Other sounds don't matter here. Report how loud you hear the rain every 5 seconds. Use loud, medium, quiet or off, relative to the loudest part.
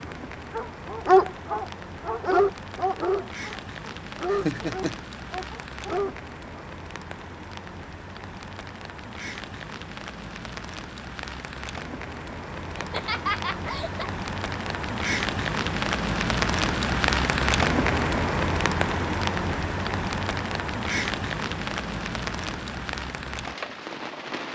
quiet, quiet, medium, loud, medium.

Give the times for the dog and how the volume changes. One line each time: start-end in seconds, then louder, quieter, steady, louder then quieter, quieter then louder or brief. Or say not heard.
0.1-6.7 quieter.